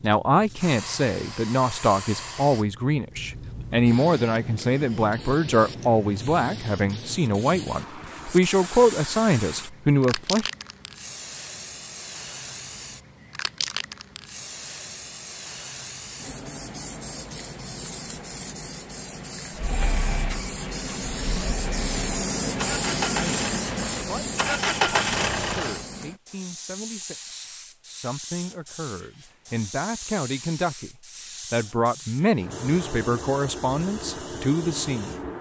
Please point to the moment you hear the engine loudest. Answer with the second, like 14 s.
25 s.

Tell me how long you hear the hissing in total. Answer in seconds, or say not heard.
35 s.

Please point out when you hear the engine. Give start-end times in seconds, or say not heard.
19.6-25.8.